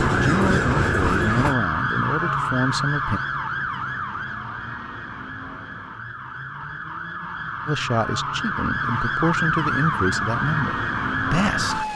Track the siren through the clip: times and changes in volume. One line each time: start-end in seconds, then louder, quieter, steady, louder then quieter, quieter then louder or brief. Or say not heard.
0.0-11.9 quieter then louder.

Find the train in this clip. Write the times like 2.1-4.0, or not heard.
0.0-1.6.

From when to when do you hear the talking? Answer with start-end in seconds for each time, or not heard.
0.1-3.2, 7.7-11.9.